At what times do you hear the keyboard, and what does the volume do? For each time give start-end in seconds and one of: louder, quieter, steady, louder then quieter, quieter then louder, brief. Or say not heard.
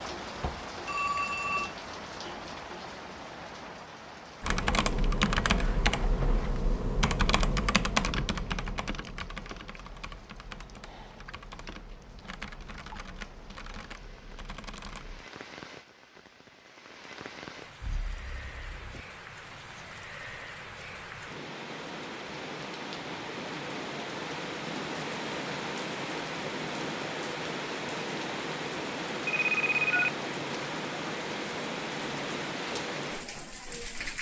4.4-15.2 quieter.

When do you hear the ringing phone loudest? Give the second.
30 s.